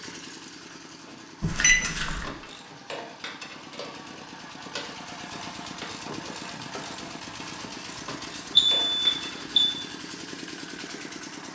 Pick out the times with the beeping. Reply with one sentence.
The beeping can be heard from 1.4 to 2.2 s and from 8.6 to 9.7 s.